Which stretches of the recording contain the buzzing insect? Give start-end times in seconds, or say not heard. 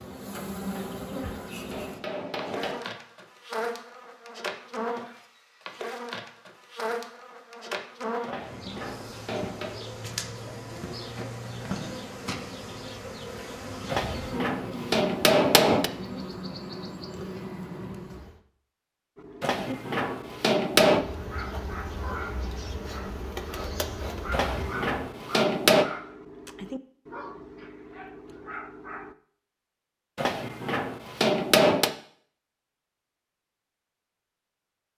0.0-18.4, 20.9-24.9.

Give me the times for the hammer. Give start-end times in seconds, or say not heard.
0.7-2.8, 8.2-9.8, 13.9-15.9, 19.4-21.1, 24.3-25.9, 30.1-31.9.